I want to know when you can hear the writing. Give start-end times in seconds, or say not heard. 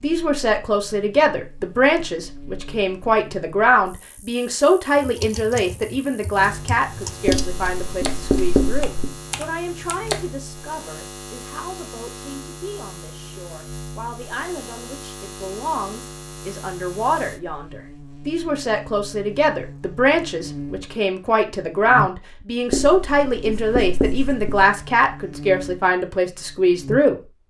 7.2-9.2, 22.7-24.6.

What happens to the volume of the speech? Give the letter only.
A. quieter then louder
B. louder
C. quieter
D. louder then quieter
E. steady
A.